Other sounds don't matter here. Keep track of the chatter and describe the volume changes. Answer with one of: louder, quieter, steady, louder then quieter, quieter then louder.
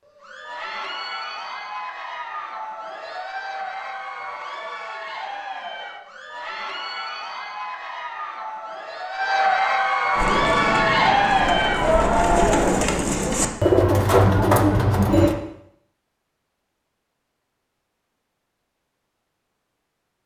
louder.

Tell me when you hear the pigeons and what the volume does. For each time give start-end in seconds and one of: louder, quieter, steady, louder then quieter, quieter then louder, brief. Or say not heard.
10.1-15.3 louder.